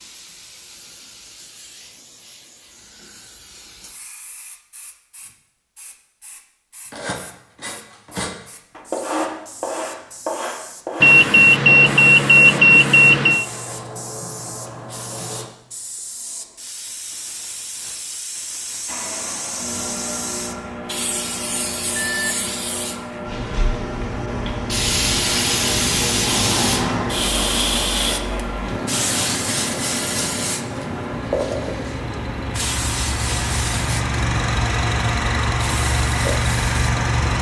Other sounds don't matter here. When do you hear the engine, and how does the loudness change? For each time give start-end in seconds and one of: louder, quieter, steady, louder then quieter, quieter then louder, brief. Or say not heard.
18.9-37.3 louder.